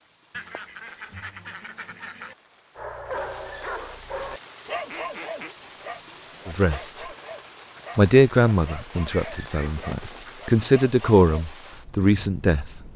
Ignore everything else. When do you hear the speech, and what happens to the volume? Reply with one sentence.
The speech can be heard briefly from 6.5 to 7.0 s; and from 8.0 to 12.8 s, getting quieter then louder.